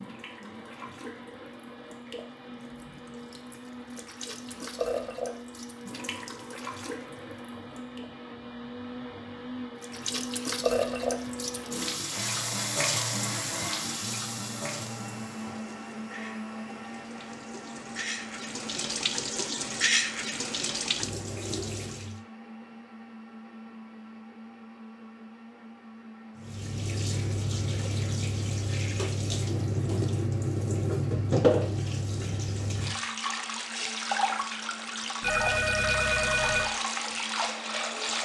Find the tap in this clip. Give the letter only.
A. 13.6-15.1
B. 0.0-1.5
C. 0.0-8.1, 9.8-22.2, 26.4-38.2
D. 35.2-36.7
C.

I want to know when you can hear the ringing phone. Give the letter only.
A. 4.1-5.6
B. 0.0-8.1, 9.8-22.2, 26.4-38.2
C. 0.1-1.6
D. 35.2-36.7
D.